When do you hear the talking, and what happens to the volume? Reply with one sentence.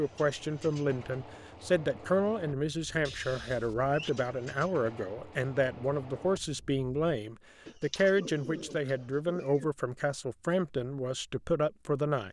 The talking can be heard from 0.0 to 12.2 s, at a steady volume.